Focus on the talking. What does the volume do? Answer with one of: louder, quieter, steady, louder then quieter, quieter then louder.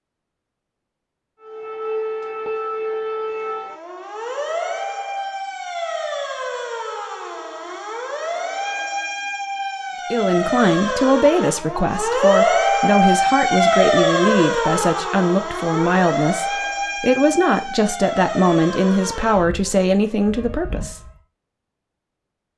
steady.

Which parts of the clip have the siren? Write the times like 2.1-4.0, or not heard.
1.4-21.2.